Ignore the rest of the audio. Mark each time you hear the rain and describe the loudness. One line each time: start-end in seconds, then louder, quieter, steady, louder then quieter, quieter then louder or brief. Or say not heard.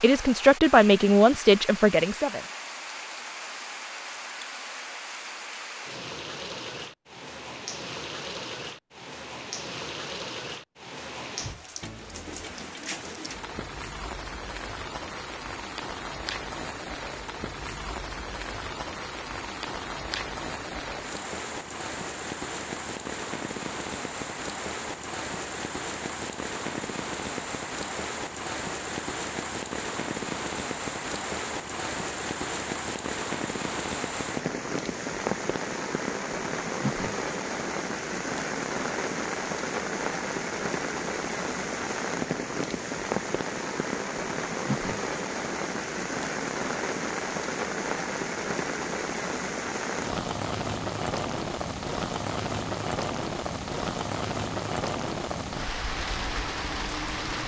0.0-57.4 louder.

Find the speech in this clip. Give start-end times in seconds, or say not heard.
0.0-2.4.